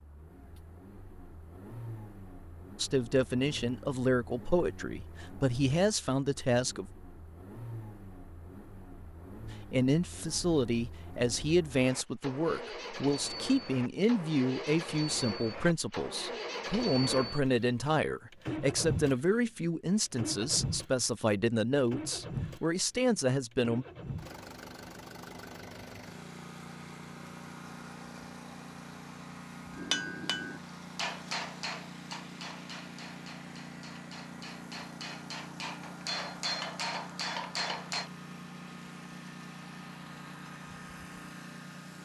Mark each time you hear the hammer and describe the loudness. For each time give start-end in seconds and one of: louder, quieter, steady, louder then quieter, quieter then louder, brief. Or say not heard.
29.7-38.1 quieter then louder.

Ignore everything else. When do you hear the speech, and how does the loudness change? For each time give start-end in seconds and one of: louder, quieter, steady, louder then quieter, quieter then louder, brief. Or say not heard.
2.8-6.9 steady
9.7-23.9 steady.